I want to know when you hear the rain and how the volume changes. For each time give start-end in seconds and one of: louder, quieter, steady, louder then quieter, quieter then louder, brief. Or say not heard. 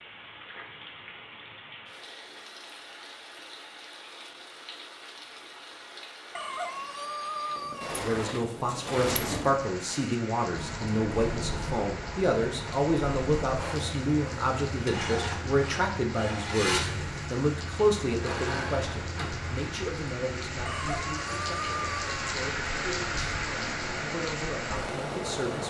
0.0-25.6 louder.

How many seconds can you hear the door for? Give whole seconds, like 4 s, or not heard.
2 s.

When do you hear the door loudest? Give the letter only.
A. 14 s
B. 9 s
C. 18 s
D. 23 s
B.